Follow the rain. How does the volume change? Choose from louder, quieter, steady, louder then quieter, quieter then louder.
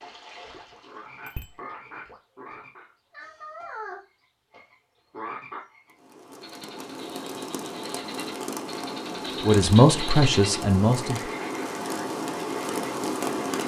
louder.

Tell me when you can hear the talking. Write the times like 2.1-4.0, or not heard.
9.4-11.2.